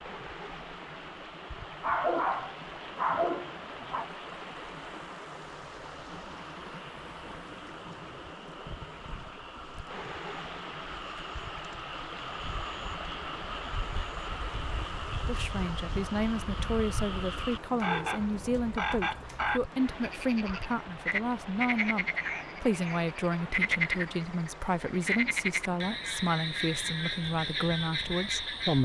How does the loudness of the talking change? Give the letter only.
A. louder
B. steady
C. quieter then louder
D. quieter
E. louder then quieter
B.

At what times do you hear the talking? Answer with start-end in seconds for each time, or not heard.
15.2-28.7.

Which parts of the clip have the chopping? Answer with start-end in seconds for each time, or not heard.
not heard.